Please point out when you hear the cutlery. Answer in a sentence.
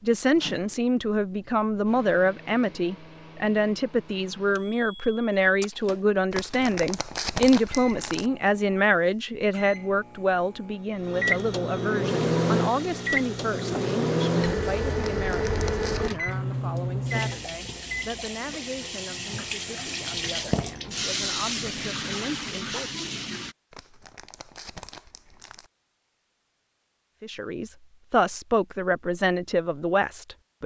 You can't hear the cutlery here.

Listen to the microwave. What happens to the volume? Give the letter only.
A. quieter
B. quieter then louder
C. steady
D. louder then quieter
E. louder
E.